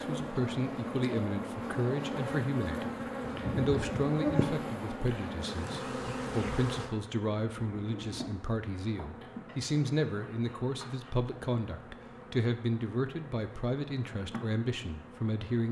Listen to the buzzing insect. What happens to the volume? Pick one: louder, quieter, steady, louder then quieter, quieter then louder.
quieter.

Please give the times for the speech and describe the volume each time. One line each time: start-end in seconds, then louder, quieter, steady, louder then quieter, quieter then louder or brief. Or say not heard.
0.0-3.0 brief
3.5-15.6 steady.